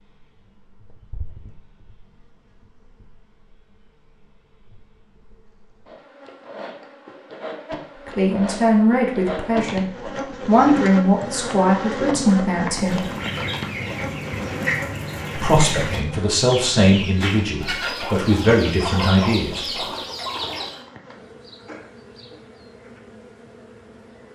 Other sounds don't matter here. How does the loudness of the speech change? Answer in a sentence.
The volume of the speech stays about the same.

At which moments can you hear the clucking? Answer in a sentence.
You can hear the clucking from 12.7 to 20.8 s.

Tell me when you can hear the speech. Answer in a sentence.
You can hear the speech from 8.1 to 13.1 s and from 15.3 to 19.8 s.